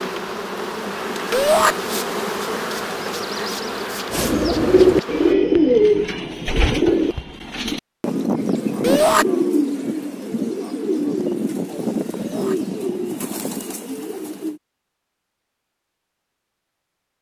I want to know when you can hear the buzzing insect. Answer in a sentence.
You can hear the buzzing insect from 0.0 to 5.3 s.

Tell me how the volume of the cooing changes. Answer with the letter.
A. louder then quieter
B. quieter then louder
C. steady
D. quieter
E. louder
D.